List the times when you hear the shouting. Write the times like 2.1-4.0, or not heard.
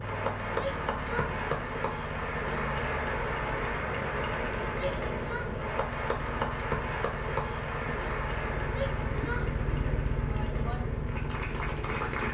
0.5-1.4, 4.7-5.5, 8.7-10.8.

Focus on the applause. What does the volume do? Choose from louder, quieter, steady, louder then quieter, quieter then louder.
quieter.